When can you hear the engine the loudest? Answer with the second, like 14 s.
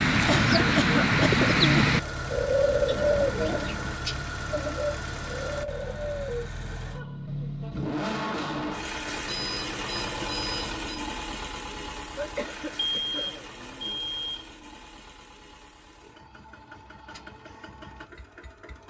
8 s.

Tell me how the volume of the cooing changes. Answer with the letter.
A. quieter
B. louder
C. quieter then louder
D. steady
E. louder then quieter
A.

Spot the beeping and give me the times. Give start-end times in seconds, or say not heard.
3.0-4.2, 9.2-11.1, 12.8-14.4.